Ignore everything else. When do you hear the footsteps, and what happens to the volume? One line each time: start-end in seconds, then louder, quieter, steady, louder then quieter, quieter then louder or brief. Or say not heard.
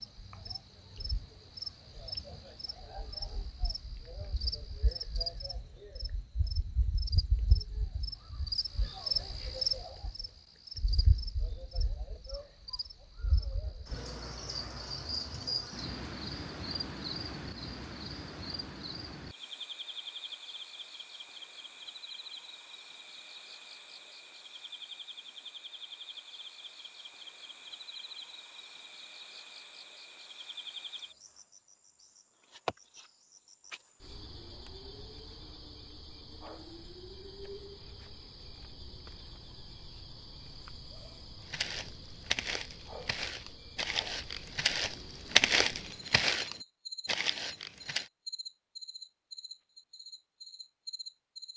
41.5-48.1 louder then quieter.